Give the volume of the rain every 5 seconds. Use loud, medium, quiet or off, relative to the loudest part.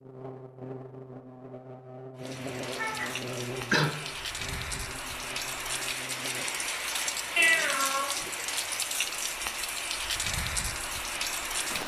medium, loud, loud.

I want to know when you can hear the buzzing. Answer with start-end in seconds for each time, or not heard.
0.0-6.5.